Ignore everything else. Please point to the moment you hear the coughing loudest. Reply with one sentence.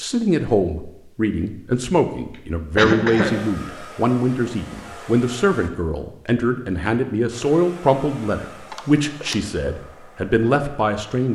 The volume of the coughing peaks at 3 seconds.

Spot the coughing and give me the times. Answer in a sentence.
The coughing can be heard from 2.8 to 3.5 s and from 8.7 to 9.3 s.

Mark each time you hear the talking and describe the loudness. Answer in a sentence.
You can hear the talking from 0.0 to 11.3 s, at a steady volume.